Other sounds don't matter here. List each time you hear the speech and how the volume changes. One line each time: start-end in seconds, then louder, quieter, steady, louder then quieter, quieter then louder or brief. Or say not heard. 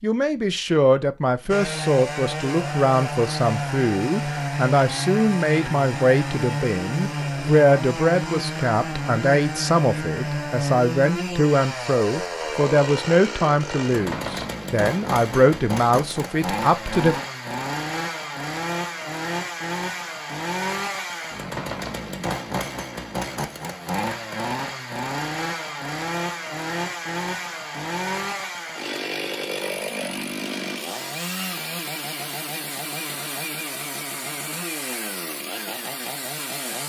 0.0-17.1 steady.